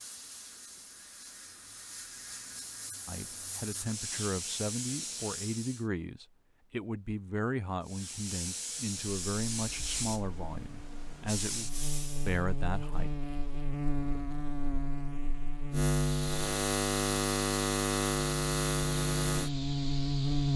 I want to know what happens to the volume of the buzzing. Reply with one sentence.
The volume of the buzzing goes up.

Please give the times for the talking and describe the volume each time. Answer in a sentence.
You can hear the talking from 3.0 to 13.1 s, at a steady volume.